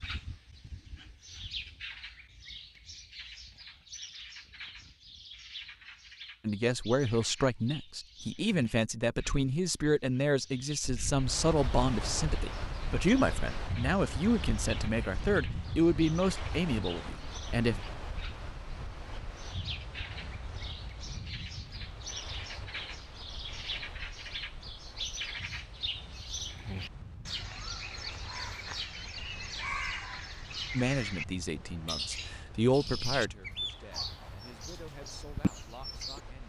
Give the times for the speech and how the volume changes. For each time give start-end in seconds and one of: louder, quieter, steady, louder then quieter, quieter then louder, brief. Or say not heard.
6.5-17.8 steady
30.7-36.4 louder then quieter.